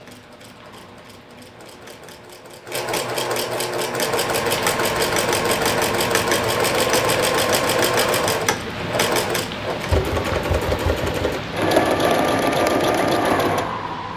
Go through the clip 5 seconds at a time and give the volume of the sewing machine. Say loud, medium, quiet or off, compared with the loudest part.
medium, loud, loud.